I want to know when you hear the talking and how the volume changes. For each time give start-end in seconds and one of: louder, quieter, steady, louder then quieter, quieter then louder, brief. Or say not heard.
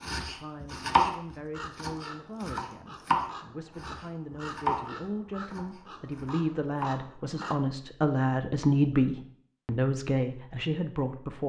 0.1-11.4 louder.